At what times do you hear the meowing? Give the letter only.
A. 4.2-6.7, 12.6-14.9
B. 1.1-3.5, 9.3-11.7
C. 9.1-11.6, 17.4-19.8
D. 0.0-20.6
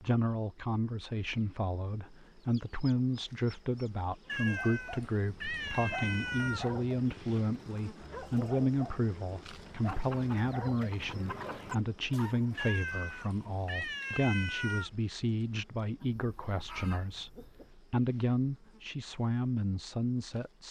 A.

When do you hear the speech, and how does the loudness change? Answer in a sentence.
You can hear the speech from 0.0 to 20.6 s, at a steady volume.